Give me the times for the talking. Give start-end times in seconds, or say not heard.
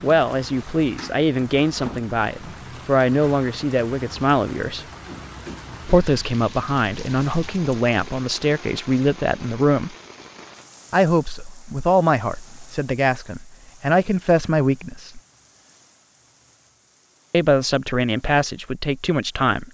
0.0-4.8, 5.8-9.9, 10.9-15.2, 17.3-19.7.